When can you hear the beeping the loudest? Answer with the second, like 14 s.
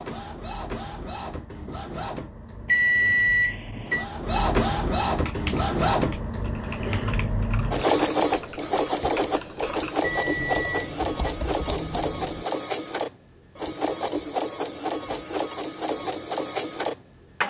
3 s.